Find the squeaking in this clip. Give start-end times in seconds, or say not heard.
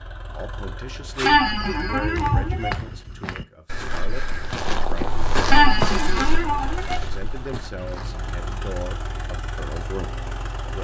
1.2-2.8, 5.5-7.0.